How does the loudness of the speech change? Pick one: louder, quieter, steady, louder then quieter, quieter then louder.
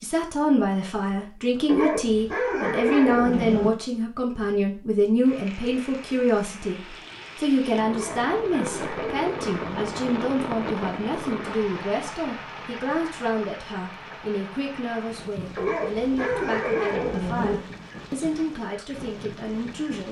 quieter.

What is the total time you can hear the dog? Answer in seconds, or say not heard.
6 s.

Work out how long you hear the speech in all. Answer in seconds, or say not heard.
20 s.